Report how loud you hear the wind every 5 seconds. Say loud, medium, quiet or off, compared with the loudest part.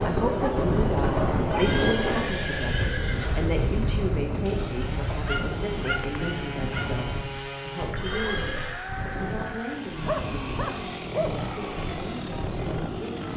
loud, medium, medium.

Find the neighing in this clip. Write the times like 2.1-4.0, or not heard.
1.5-3.5, 8.0-8.8.